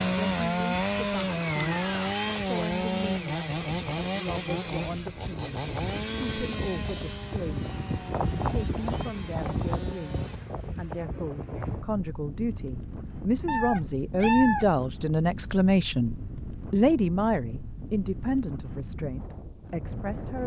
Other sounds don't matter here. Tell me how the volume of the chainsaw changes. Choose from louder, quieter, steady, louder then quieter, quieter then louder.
quieter.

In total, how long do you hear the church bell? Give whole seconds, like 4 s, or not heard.
not heard.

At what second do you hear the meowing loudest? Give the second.
14 s.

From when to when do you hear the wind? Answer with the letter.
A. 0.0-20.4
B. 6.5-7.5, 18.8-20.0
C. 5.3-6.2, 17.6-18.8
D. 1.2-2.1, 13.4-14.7
A.